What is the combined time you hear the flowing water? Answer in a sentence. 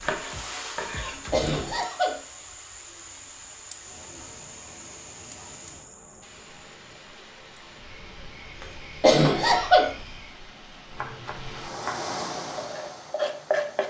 You can hear the flowing water for 14 seconds altogether.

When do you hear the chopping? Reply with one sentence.
You can hear the chopping from 0.0 to 1.8 s and from 10.9 to 13.8 s.